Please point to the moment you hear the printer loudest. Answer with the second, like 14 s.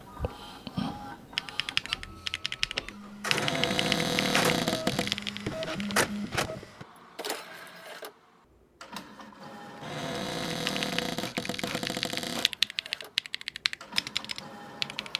6 s.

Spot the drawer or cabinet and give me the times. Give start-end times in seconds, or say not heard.
3.3-5.2, 9.8-12.5.